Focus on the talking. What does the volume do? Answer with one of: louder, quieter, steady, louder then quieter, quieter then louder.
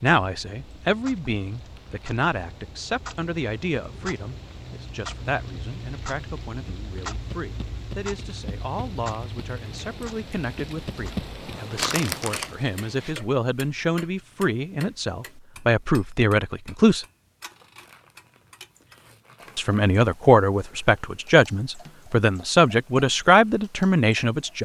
quieter then louder.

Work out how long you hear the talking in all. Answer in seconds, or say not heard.
22 s.